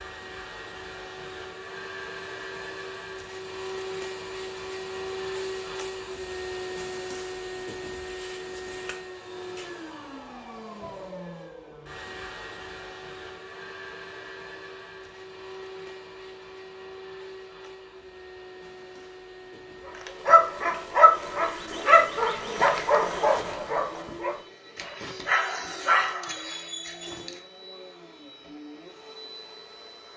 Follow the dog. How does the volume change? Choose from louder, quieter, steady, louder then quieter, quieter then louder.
quieter.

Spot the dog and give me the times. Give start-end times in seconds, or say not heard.
19.9-27.4.